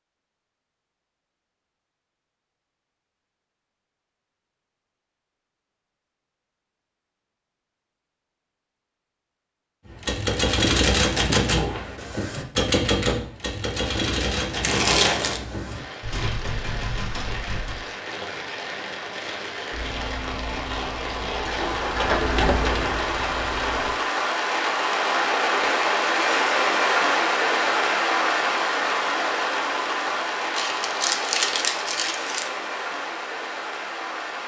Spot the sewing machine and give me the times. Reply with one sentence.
The sewing machine can be heard from 19.7 to 23.9 s.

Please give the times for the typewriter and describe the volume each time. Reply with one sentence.
The typewriter can be heard from 9.8 to 17.8 s, getting quieter.